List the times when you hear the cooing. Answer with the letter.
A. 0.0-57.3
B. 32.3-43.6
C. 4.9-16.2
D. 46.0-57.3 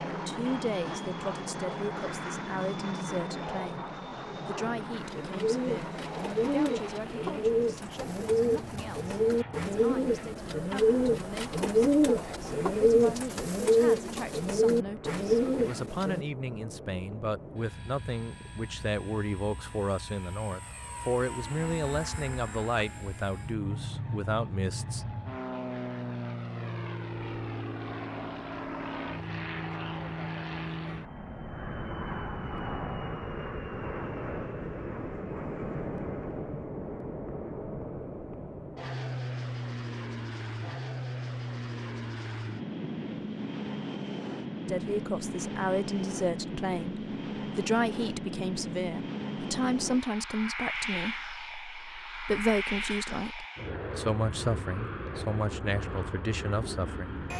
C.